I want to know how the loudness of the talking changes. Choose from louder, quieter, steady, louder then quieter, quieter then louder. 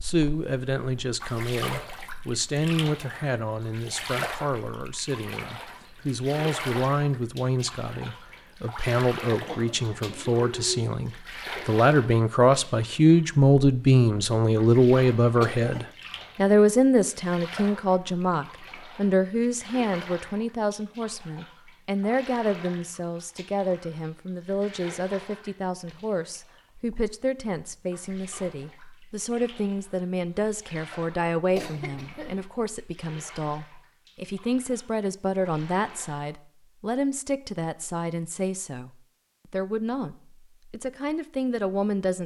louder then quieter.